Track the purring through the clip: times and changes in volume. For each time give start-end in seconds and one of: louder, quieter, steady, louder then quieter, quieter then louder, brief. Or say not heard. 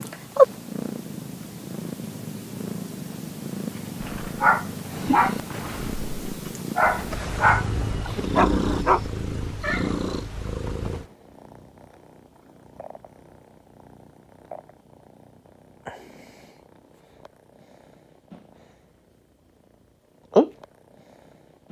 0.0-21.6 quieter then louder.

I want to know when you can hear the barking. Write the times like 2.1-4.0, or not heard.
4.0-9.1.